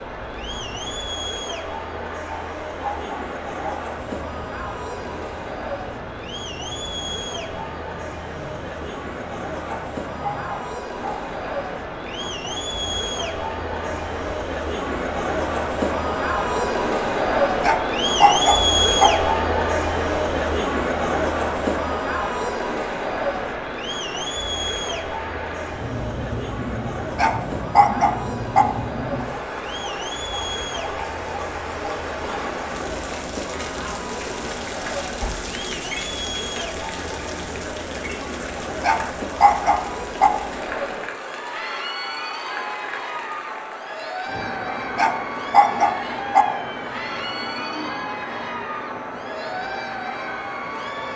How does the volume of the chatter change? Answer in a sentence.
The volume of the chatter goes up, then down.